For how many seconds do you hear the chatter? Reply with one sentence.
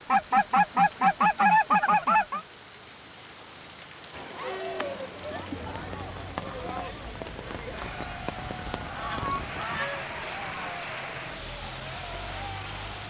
You can hear the chatter for 9 seconds altogether.